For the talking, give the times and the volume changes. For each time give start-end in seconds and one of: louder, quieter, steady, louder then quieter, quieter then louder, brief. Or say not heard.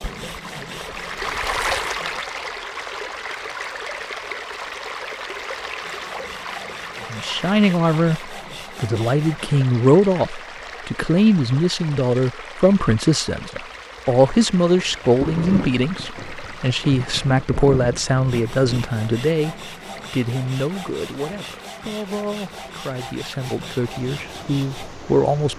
7.1-25.5 quieter.